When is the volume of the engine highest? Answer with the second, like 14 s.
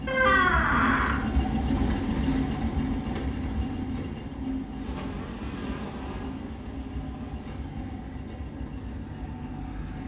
2 s.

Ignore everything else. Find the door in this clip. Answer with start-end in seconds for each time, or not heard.
0.1-1.1.